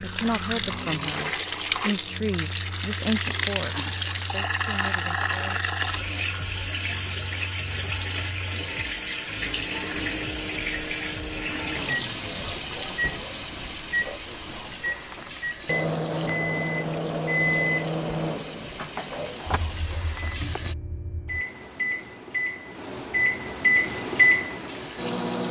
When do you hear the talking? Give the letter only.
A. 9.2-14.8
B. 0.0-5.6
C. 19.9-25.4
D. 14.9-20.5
B.